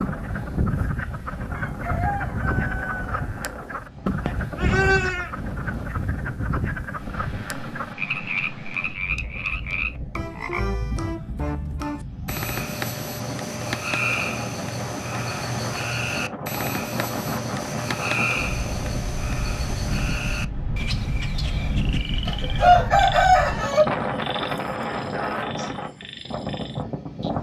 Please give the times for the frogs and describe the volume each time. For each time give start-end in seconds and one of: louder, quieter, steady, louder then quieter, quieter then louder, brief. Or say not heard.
0.0-27.3 quieter.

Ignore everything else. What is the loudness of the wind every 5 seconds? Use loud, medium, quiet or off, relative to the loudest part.
medium, medium, medium, loud, loud, loud.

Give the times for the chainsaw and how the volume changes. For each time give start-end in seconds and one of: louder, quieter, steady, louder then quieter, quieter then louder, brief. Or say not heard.
not heard.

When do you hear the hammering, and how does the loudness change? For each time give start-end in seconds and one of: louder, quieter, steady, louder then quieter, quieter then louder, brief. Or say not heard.
not heard.